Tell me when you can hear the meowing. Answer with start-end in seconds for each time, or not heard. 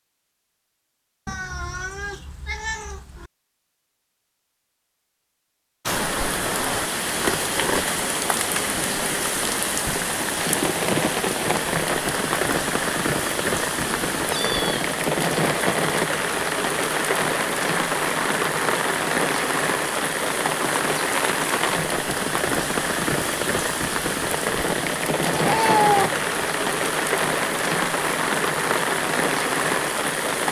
1.2-3.3, 13.8-14.8, 25.4-26.1.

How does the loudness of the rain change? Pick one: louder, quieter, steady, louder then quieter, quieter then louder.
steady.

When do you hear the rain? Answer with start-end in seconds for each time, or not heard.
5.8-30.4.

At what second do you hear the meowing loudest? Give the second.
26 s.